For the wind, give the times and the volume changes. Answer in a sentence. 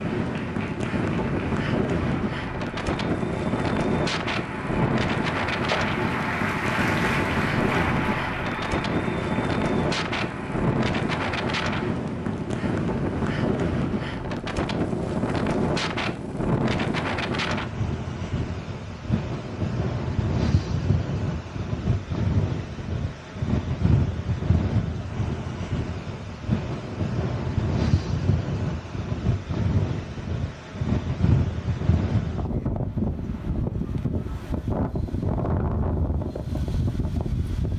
You can hear the wind from 0.0 to 37.7 s, at a steady volume.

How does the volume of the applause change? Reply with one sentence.
The volume of the applause goes up, then down.